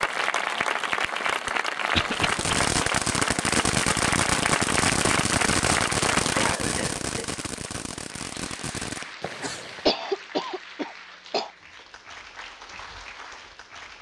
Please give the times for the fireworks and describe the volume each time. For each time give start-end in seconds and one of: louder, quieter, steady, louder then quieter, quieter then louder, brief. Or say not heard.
2.1-9.9 quieter.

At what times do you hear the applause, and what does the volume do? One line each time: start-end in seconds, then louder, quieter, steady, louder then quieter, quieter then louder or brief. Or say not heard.
0.0-13.9 quieter.